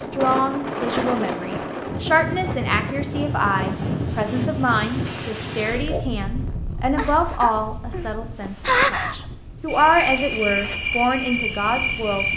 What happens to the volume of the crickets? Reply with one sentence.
The volume of the crickets goes up.